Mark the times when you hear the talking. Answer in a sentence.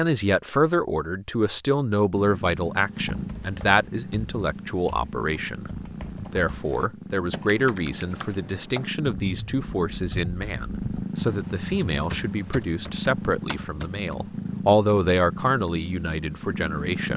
The talking can be heard from 0.0 to 5.7 s and from 6.3 to 17.1 s.